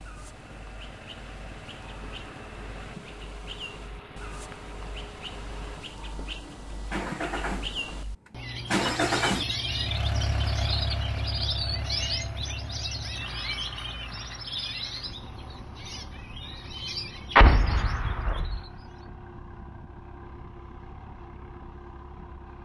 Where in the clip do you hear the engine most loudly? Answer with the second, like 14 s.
9 s.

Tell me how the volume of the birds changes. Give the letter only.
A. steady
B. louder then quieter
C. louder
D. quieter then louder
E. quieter
B.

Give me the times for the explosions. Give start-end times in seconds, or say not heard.
17.4-18.6.